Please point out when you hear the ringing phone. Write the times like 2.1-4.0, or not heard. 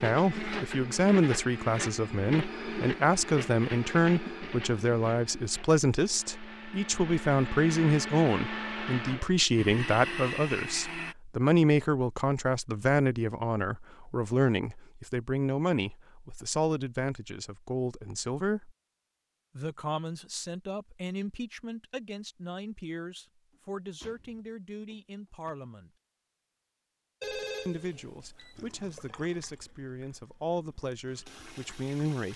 27.2-28.6.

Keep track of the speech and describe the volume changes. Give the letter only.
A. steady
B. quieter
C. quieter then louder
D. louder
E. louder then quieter
B.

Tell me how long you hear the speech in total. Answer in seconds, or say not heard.
30 s.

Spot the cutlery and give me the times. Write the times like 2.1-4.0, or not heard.
not heard.